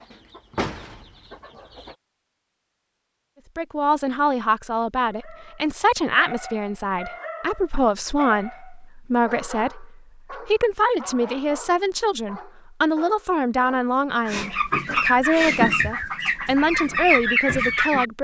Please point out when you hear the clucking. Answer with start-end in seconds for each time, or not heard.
0.0-1.9, 14.2-18.1.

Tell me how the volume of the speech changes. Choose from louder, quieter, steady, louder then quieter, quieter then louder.
steady.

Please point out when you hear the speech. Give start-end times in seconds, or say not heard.
3.5-18.1.